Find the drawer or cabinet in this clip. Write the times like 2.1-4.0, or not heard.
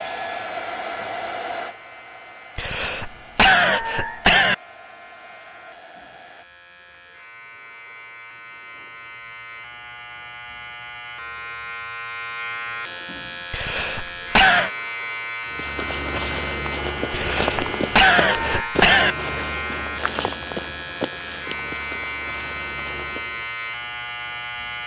not heard.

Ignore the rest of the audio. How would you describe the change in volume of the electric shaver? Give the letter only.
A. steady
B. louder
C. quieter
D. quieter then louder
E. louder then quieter
B.